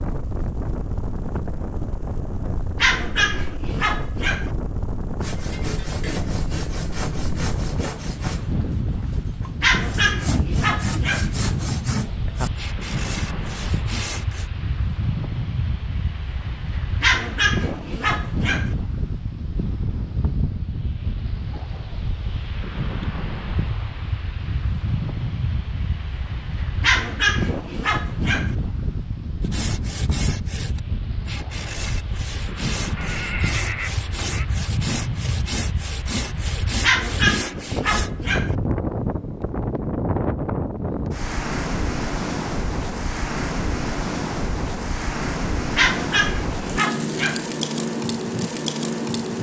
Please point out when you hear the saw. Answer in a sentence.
The saw can be heard from 5.2 to 14.4 s and from 29.4 to 38.1 s.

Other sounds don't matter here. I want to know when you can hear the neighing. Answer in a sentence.
You can hear the neighing from 33.0 to 34.5 s.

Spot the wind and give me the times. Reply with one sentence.
The wind can be heard from 0.0 to 49.3 s.